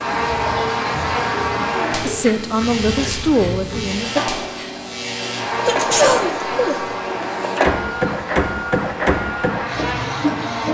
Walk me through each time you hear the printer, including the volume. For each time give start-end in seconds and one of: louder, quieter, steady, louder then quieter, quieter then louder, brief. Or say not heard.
0.0-10.6 louder.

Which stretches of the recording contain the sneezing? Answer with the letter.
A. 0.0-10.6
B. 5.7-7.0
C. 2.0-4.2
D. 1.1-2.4
B.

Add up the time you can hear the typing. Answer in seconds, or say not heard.
not heard.